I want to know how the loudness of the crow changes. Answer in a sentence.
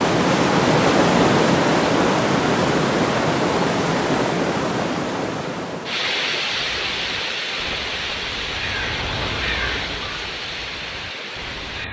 The volume of the crow goes up, then down.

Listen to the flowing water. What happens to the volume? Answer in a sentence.
The loudness of the flowing water goes down.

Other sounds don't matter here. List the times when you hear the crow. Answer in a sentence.
You can hear the crow from 6.5 to 11.8 s.